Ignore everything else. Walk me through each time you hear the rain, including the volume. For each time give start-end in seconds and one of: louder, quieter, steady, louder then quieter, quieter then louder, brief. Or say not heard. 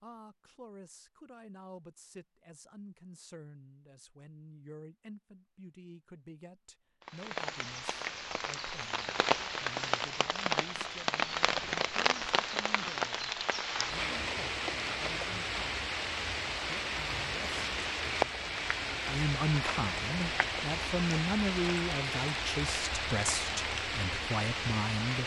7.0-25.2 steady.